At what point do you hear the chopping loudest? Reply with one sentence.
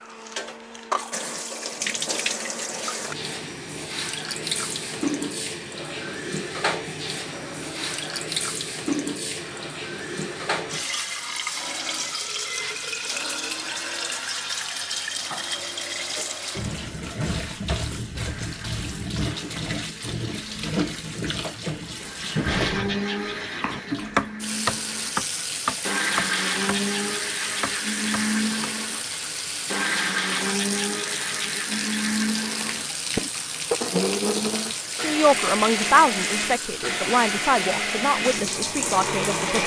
The volume of the chopping peaks at 24 seconds.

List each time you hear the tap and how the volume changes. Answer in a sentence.
The tap can be heard from 0.0 to 39.6 s, at a steady volume.